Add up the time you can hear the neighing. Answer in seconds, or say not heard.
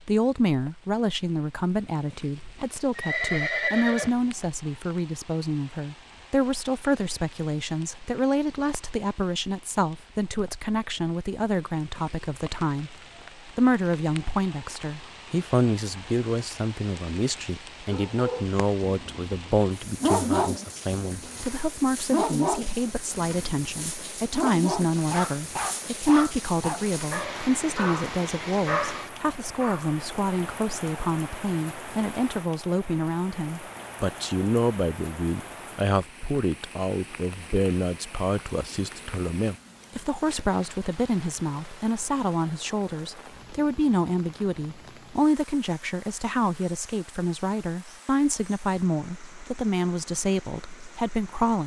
2 s.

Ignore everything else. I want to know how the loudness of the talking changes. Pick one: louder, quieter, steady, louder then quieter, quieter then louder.
steady.